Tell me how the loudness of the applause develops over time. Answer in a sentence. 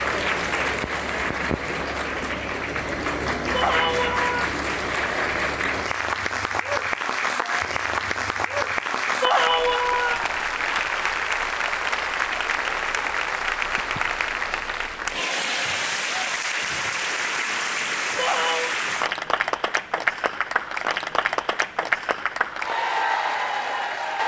The loudness of the applause stays about the same.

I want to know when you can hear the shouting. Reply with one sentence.
The shouting can be heard from 3.5 to 4.5 s, from 9.2 to 10.3 s and from 18.1 to 18.8 s.